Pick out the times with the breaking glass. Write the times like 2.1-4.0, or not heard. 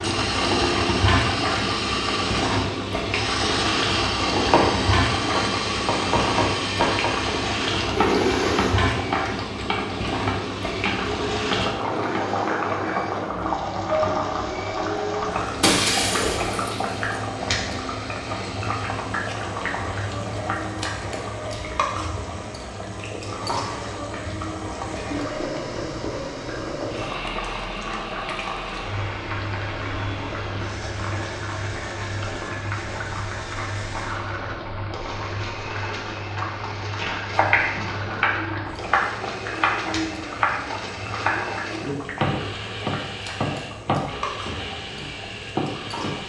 15.6-17.0.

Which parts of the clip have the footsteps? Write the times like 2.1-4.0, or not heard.
not heard.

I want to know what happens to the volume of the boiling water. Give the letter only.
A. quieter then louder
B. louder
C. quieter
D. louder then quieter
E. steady
C.